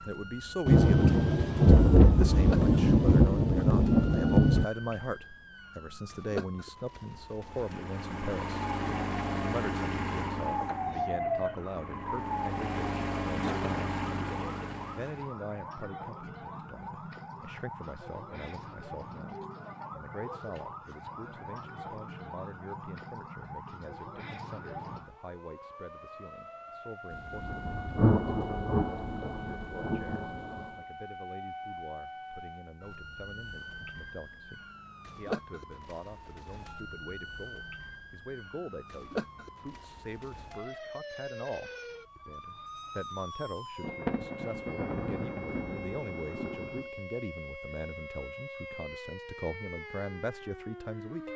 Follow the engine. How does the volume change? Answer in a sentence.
The volume of the engine goes down, then up.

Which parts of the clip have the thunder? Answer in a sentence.
The thunder can be heard from 0.7 to 4.7 s, from 27.1 to 30.7 s and from 43.8 to 46.8 s.